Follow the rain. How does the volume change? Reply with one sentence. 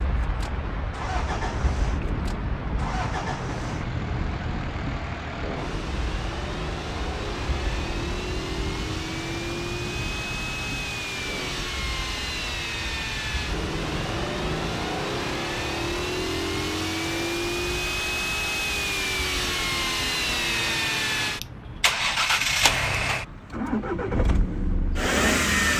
The loudness of the rain goes down.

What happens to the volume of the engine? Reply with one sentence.
The loudness of the engine goes up.